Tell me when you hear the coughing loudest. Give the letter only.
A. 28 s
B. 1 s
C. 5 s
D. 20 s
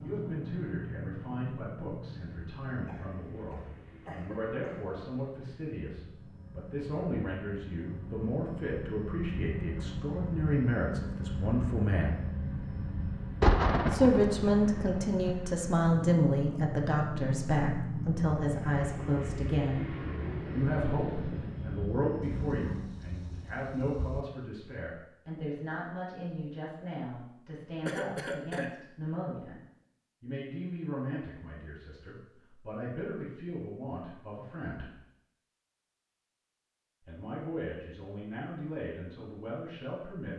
A.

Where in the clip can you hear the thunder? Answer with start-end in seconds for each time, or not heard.
13.4-15.3, 22.2-24.2.